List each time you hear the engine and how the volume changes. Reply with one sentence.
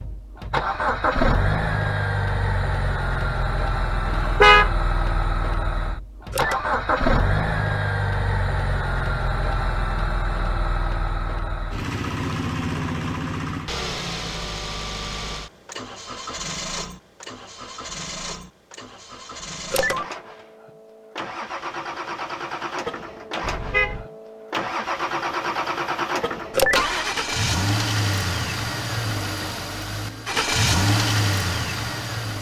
The engine can be heard from 0.0 to 32.3 s, getting quieter then louder.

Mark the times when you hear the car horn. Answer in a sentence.
You can hear the car horn from 4.0 to 4.7 s and from 23.4 to 24.1 s.